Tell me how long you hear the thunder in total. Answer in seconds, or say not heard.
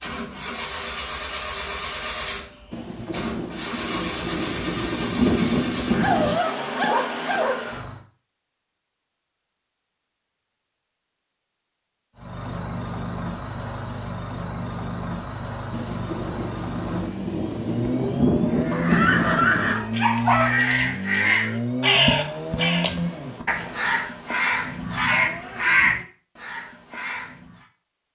8 s.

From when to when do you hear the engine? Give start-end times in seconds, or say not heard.
0.0-8.1, 12.2-23.4.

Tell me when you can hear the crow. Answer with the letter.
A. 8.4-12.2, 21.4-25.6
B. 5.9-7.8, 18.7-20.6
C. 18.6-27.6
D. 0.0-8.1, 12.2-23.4
C.